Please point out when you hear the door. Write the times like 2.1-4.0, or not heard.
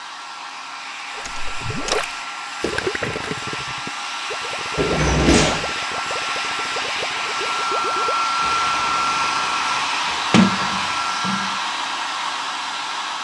1.2-2.0, 4.8-5.8, 10.3-11.5.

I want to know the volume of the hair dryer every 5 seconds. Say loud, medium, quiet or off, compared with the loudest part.
medium, loud, loud.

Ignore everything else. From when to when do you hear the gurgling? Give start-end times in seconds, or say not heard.
1.1-10.4.